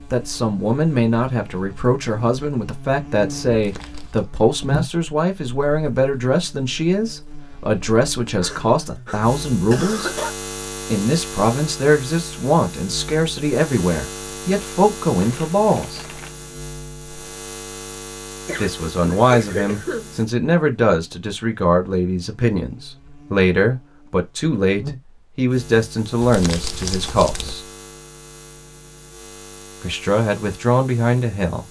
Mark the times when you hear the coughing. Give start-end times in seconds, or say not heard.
8.4-10.3, 18.4-20.1.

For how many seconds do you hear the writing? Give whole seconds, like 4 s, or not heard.
not heard.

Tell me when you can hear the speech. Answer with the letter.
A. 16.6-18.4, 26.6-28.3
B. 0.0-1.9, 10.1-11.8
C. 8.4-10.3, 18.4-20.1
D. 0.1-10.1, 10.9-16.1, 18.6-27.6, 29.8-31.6
D.